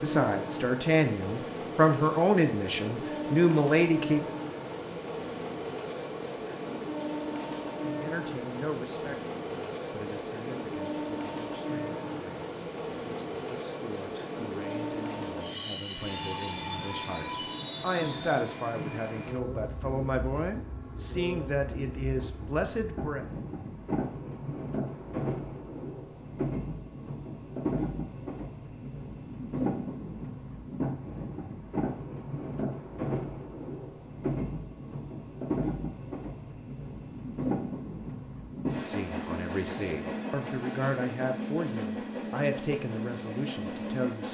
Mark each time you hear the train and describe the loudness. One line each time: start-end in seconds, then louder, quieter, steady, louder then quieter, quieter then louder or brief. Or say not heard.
0.0-44.2 steady.